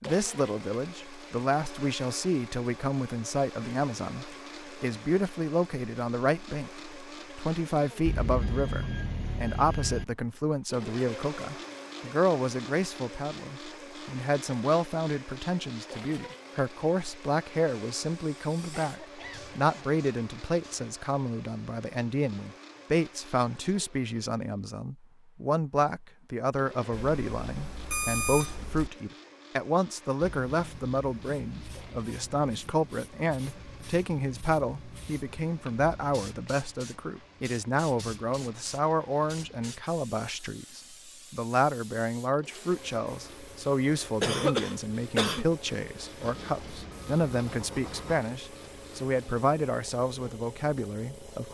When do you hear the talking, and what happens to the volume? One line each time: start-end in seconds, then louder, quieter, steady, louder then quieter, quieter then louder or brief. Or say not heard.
0.0-51.5 steady.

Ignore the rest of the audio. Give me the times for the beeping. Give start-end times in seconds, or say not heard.
8.1-10.1, 26.9-28.9, 46.2-48.2.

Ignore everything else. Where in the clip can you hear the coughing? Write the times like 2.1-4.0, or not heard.
18.8-19.9, 44.2-45.5.